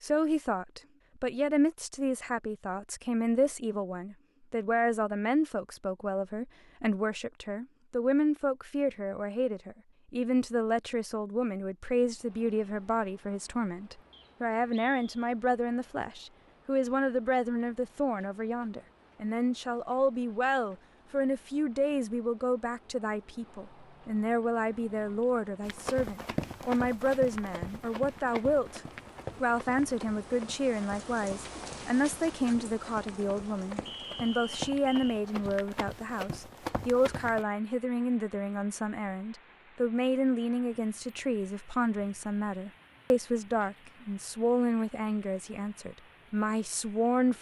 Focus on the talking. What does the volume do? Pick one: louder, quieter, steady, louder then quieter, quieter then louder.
steady.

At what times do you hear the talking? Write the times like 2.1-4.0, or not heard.
0.0-28.8, 29.4-47.3.